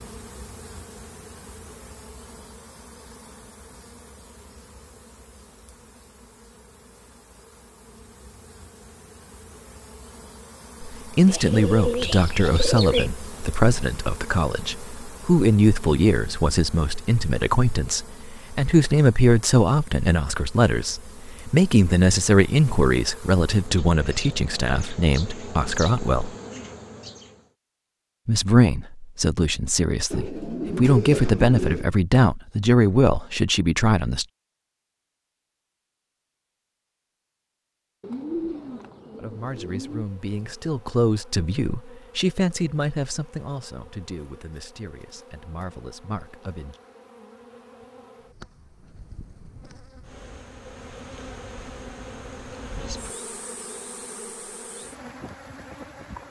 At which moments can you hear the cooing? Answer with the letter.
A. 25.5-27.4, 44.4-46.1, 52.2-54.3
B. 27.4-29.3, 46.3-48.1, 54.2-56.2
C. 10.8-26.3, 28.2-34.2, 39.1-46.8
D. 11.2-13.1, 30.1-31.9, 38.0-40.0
D.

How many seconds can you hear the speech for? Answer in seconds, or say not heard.
29 s.